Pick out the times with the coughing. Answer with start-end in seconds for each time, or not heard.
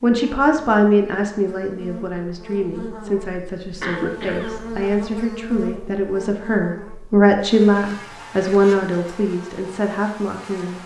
3.8-4.7.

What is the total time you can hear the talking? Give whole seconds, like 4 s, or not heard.
11 s.